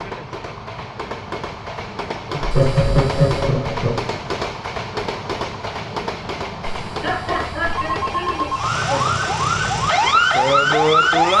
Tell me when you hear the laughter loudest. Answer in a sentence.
The loudest moment of the laughter is at 3 seconds.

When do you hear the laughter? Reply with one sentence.
You can hear the laughter from 2.4 to 4.0 s and from 7.0 to 9.2 s.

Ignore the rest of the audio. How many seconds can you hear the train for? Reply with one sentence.
You can hear the train for 11 seconds altogether.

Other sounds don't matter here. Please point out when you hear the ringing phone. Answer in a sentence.
The ringing phone can be heard from 2.5 to 3.5 s and from 6.6 to 8.8 s.